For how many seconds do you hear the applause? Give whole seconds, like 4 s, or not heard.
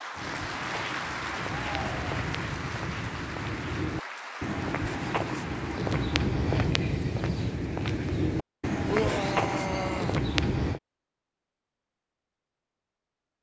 6 s.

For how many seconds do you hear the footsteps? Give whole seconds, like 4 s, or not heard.
11 s.